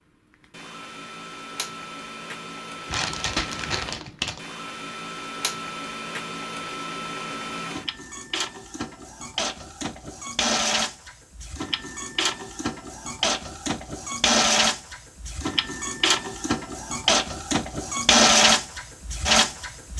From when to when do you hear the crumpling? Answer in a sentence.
You can hear the crumpling from 2.9 to 4.4 s.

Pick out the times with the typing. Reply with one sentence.
You can't hear the typing here.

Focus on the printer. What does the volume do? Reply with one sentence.
The loudness of the printer goes up.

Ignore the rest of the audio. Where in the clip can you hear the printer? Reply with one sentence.
You can hear the printer from 0.3 to 19.9 s.